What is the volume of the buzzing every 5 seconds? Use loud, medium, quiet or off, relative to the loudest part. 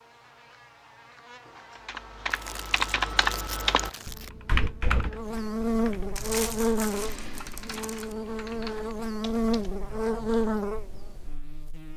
quiet, loud, loud.